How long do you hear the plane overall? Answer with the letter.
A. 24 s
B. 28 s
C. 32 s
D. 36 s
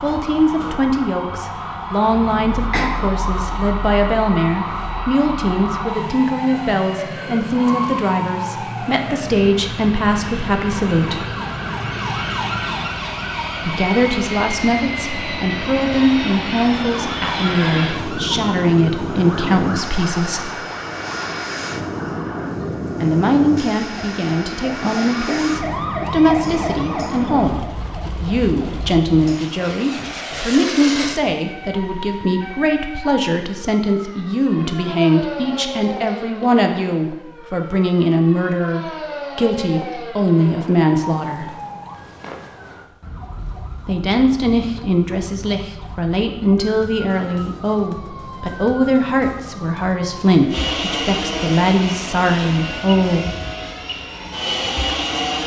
D.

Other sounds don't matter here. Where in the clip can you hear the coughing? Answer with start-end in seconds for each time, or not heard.
2.2-2.9.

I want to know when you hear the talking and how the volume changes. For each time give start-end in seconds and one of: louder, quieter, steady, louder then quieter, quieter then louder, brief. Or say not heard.
0.0-11.2 steady
13.6-20.5 steady
23.0-41.5 steady
43.9-53.4 steady.